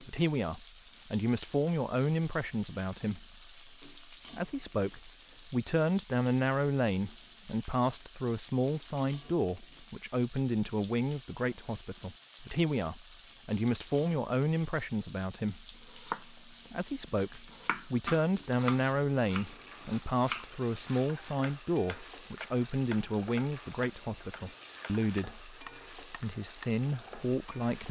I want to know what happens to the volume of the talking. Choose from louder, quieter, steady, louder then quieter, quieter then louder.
steady.